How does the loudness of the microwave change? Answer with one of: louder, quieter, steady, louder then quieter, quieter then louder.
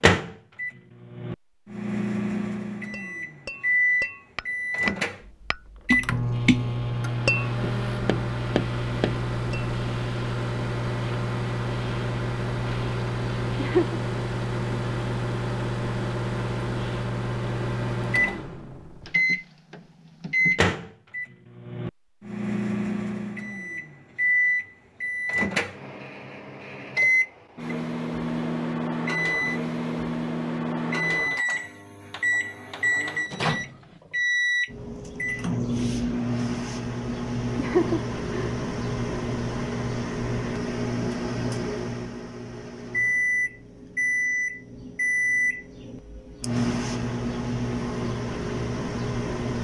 steady.